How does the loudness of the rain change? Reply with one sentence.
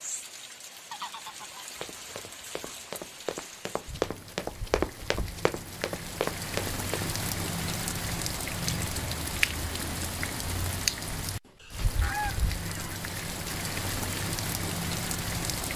The loudness of the rain goes up.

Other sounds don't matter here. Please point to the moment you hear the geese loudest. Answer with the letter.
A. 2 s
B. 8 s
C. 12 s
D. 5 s
C.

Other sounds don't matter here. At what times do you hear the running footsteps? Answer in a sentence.
You can hear the running footsteps from 1.8 to 7.2 s.